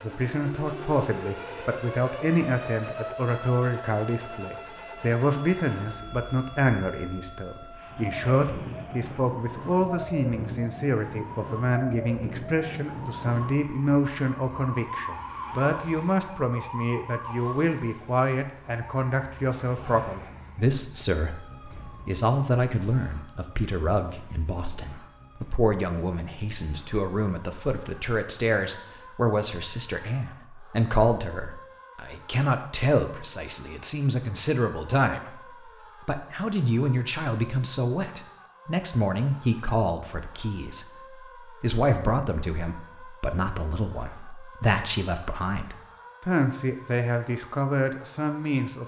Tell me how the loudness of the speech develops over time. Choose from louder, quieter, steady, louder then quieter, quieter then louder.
steady.